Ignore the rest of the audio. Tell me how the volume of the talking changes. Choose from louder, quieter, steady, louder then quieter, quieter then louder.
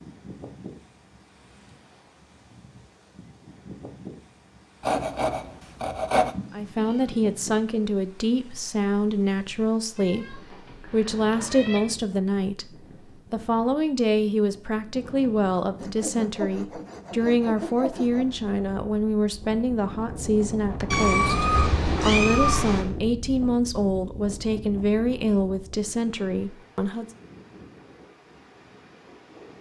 steady.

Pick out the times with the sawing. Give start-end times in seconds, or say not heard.
4.8-6.3, 15.8-18.4.